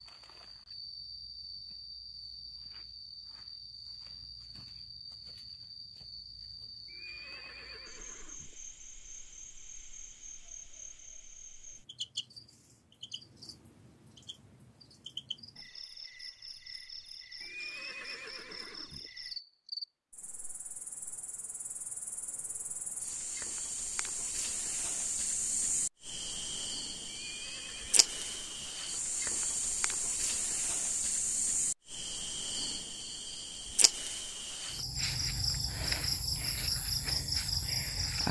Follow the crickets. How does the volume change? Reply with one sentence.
The loudness of the crickets goes up.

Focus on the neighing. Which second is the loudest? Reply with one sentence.
The volume of the neighing peaks at 18 seconds.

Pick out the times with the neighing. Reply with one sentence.
You can hear the neighing from 6.8 to 8.6 s, from 17.4 to 19.1 s and from 27.1 to 28.8 s.